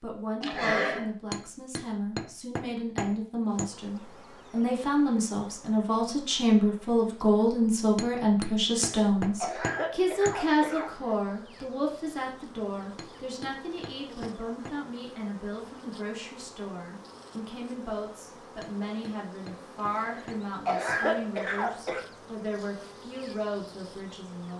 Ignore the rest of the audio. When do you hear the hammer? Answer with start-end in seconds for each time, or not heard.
1.3-3.7, 8.0-10.4, 12.9-14.8, 18.6-21.0.